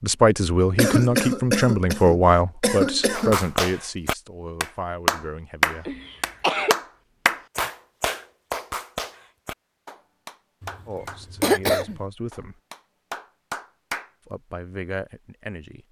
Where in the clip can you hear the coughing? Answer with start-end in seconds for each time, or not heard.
0.8-3.5, 5.8-6.8, 10.6-12.1.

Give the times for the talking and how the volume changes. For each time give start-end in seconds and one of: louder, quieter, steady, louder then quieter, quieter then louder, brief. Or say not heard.
0.0-6.0 quieter
10.8-12.6 brief
14.2-15.8 brief.